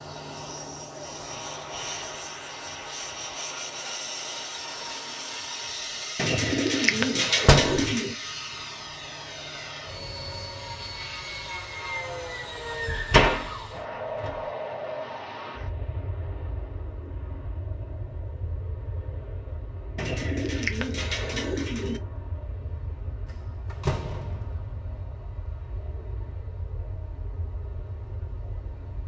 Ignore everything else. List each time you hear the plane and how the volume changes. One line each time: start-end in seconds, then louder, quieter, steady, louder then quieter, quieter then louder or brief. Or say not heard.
0.0-29.0 quieter.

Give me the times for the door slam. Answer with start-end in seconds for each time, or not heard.
7.5-7.9, 12.8-14.3, 23.7-24.6.